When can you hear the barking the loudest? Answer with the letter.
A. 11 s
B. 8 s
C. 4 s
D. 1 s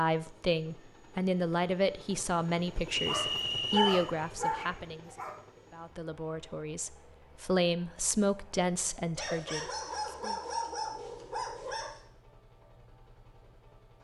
C.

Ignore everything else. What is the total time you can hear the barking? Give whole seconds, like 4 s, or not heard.
5 s.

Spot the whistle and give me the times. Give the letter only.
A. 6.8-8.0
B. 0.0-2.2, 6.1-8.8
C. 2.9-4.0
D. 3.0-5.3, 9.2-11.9
C.